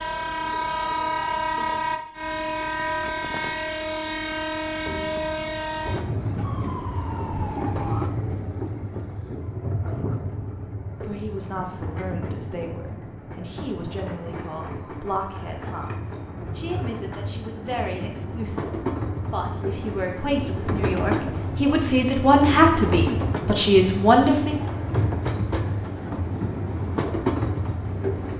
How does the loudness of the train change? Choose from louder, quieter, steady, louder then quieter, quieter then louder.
quieter then louder.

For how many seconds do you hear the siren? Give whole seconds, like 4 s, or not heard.
2 s.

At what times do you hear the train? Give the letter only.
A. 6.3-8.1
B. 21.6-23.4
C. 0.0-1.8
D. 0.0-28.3
D.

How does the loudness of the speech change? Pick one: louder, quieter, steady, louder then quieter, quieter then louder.
louder.